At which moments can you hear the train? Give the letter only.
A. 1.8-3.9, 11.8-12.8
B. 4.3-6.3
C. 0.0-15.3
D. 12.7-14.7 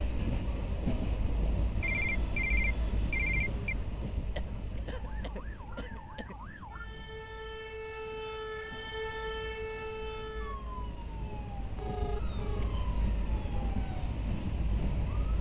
C.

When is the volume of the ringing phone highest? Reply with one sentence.
The volume of the ringing phone peaks at 3 seconds.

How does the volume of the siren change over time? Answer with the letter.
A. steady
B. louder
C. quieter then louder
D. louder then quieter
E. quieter
D.